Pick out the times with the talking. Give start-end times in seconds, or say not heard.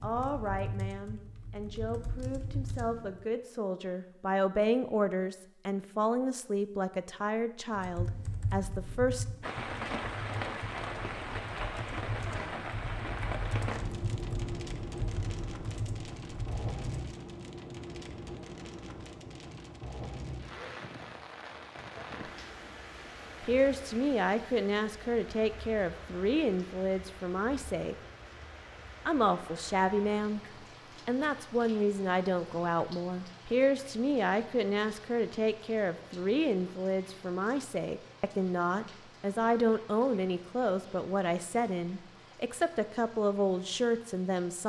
0.0-9.2, 23.4-27.9, 29.1-30.4, 31.1-44.6.